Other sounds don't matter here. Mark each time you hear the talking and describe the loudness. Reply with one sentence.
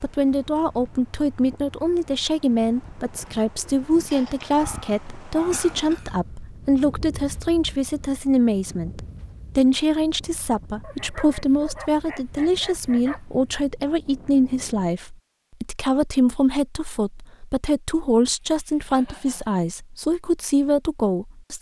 You can hear the talking from 0.0 to 21.5 s, at a steady volume.